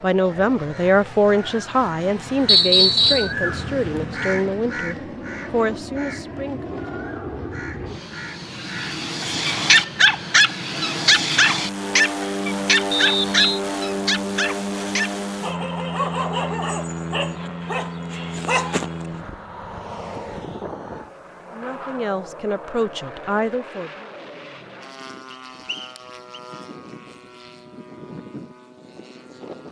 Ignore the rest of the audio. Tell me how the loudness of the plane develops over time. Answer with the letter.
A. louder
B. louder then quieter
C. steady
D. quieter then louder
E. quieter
B.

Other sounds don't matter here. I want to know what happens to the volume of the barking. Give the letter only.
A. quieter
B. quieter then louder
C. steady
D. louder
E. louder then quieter
A.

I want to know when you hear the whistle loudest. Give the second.
3 s.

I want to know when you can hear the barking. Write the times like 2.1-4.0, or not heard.
9.2-19.2.